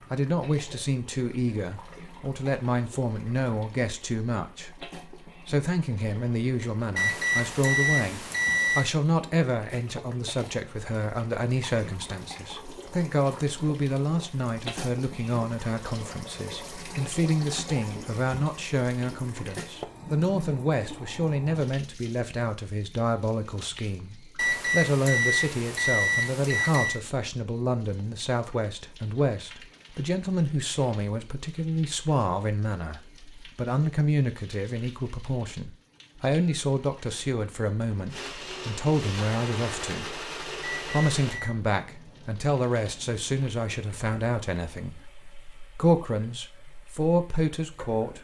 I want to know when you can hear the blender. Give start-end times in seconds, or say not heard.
38.0-41.4.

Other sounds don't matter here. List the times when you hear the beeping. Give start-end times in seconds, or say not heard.
7.0-8.9, 24.4-27.0, 40.6-41.5.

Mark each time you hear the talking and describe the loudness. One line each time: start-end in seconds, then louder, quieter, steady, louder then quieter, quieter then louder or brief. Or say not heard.
0.1-48.1 steady.